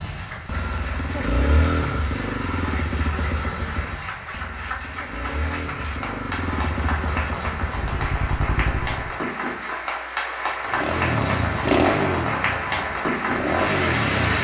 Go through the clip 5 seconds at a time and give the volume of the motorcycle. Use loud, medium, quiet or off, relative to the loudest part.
medium, medium, loud.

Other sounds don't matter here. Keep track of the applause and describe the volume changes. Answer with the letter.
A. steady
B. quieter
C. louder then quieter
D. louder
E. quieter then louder
D.